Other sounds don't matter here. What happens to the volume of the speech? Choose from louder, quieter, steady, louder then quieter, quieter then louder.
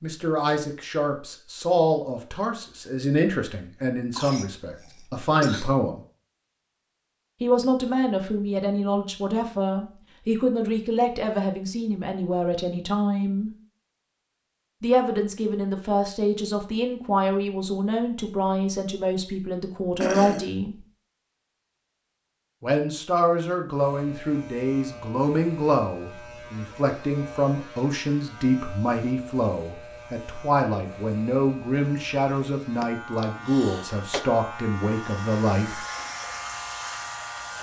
steady.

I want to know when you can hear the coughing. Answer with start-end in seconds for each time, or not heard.
4.2-5.7, 20.0-20.5, 32.8-34.2.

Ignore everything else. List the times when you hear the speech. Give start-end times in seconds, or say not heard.
0.0-6.0, 7.4-13.5, 14.8-20.8, 22.6-35.8.